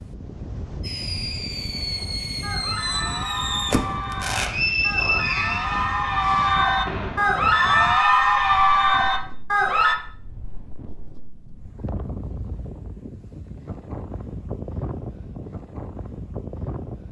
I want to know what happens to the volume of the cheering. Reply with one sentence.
The volume of the cheering goes up.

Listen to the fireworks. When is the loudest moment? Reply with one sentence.
The loudest moment of the fireworks is at 4 seconds.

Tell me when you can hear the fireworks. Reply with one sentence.
You can hear the fireworks from 0.8 to 7.5 s.